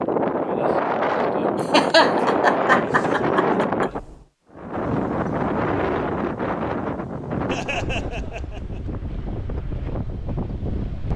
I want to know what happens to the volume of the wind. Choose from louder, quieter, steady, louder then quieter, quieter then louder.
quieter.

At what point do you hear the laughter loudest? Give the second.
2 s.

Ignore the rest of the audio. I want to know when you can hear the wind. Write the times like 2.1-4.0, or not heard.
0.0-11.1.